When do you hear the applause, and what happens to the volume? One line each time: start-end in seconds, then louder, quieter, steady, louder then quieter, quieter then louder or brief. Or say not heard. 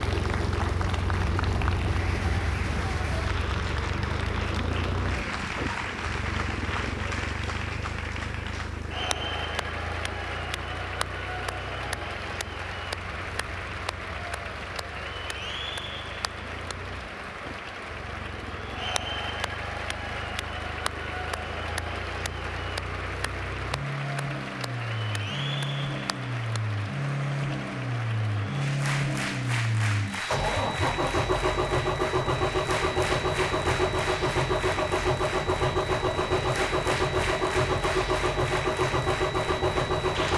0.0-40.3 steady.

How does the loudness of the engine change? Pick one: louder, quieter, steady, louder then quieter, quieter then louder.
quieter then louder.